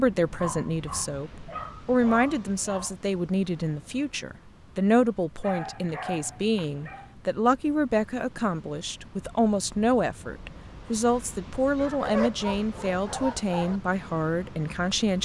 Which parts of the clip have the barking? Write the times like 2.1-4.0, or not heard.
0.4-3.0, 5.4-7.2, 11.8-13.8.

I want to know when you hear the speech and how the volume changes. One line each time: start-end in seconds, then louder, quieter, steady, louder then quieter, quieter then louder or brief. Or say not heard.
0.0-15.2 steady.